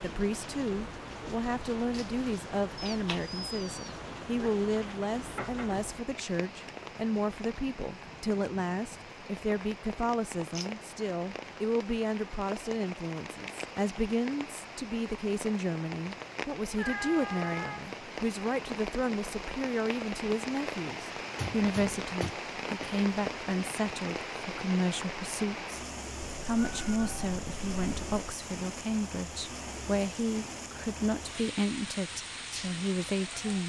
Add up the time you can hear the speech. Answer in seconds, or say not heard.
33 s.